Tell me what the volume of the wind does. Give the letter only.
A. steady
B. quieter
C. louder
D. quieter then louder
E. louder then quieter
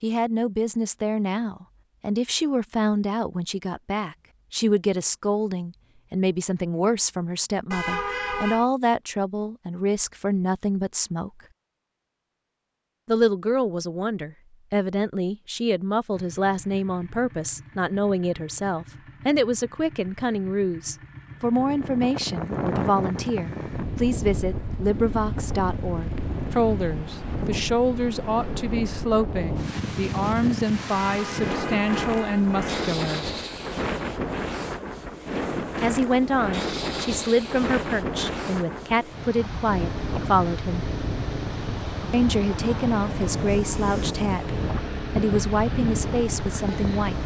A.